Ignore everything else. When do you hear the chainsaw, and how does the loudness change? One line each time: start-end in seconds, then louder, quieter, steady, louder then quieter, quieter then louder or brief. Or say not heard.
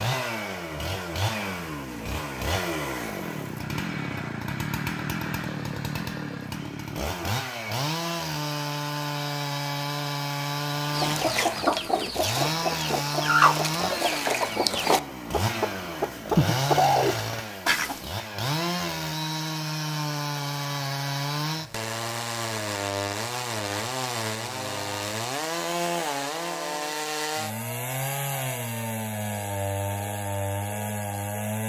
0.0-31.6 steady.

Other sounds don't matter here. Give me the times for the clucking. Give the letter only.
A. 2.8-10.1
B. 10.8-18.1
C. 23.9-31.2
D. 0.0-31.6
B.